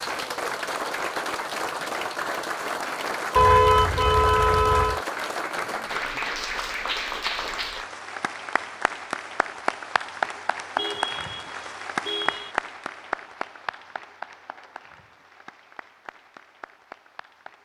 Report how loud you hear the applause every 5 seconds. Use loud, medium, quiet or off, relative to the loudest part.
loud, loud, loud, quiet.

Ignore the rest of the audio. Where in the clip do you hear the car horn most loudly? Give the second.
4 s.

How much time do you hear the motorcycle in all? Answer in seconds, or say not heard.
not heard.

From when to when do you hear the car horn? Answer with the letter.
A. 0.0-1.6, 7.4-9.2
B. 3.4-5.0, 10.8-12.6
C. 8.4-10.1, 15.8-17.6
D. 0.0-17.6
B.